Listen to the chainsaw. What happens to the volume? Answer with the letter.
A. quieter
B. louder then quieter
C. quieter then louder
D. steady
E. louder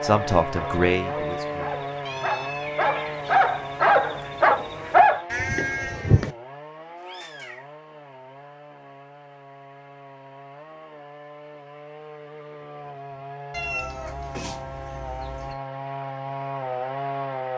C.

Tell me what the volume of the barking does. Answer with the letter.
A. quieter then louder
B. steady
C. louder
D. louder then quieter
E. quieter
C.